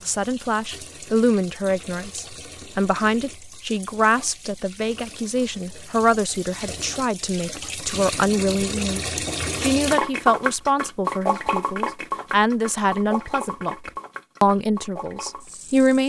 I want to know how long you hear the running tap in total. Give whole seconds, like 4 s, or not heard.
16 s.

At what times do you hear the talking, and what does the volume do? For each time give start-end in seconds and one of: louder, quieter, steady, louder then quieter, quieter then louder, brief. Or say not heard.
0.1-16.0 steady.